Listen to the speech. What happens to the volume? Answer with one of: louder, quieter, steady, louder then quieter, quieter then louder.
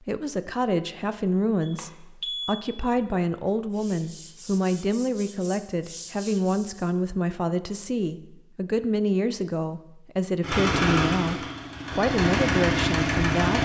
steady.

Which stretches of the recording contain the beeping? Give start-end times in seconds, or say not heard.
1.6-2.6.